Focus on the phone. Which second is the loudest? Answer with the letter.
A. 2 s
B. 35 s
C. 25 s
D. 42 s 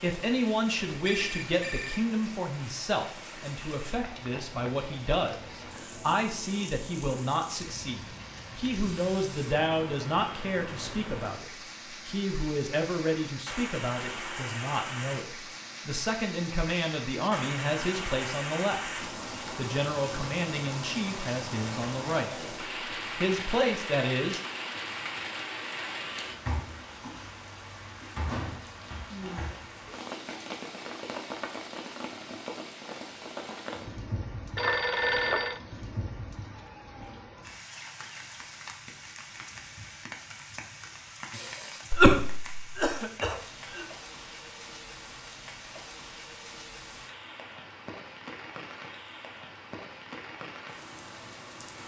B.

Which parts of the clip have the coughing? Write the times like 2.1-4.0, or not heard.
41.3-43.9.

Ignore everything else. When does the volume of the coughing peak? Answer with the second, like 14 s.
42 s.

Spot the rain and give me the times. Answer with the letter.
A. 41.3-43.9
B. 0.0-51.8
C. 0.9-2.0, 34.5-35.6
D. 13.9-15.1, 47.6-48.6
B.